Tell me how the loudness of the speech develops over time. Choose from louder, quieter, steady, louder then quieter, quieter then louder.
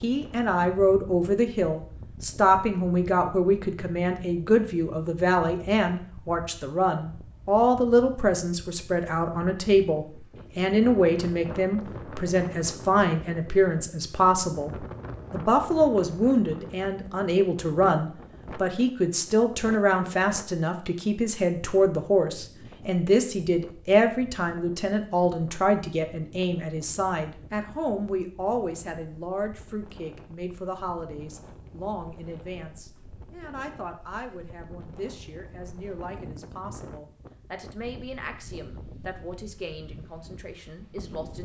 quieter.